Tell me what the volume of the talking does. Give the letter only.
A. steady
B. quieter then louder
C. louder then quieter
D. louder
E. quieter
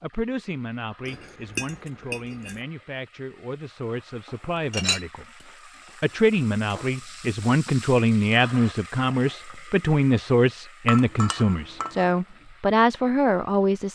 D.